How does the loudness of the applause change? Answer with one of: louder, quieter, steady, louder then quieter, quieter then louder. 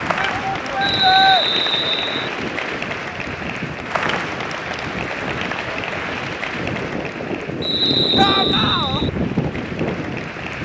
quieter.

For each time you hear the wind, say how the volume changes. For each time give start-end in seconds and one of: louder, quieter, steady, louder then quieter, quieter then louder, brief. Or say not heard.
0.0-10.5 louder.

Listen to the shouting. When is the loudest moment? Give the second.
1 s.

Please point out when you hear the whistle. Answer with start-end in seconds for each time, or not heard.
0.8-2.3, 7.6-9.1.